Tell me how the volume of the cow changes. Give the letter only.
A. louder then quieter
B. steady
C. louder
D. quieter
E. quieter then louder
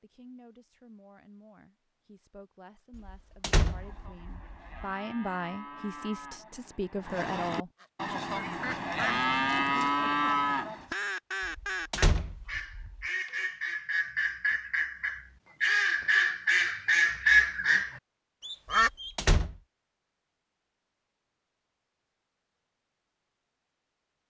C.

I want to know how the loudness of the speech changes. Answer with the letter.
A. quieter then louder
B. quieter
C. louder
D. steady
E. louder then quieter
C.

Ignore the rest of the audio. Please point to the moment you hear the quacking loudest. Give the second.
17 s.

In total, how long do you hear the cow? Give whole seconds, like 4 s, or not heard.
7 s.